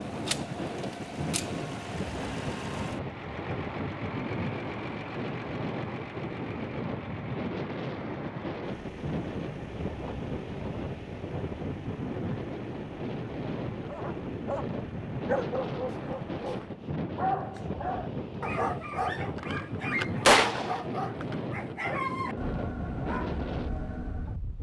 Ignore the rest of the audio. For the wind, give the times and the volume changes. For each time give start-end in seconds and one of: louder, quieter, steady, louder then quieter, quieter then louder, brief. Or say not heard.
0.0-24.5 steady.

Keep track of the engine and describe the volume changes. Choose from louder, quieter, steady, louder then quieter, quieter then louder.
quieter.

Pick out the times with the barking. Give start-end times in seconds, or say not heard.
13.8-24.4.